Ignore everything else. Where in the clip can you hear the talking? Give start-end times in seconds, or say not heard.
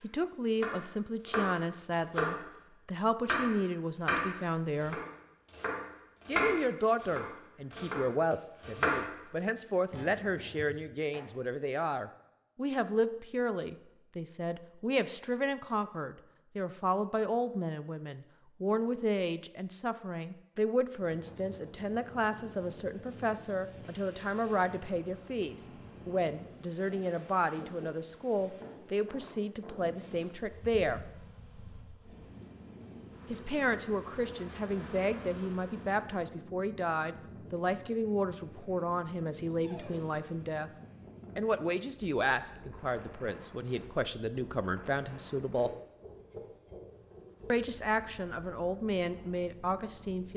0.0-5.0, 6.2-31.0, 33.3-40.7, 41.4-45.7, 47.5-50.3.